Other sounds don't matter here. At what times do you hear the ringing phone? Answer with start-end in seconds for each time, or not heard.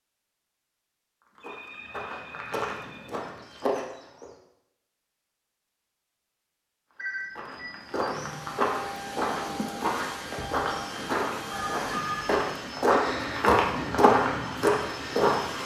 1.4-3.1, 7.0-7.7, 11.5-12.3.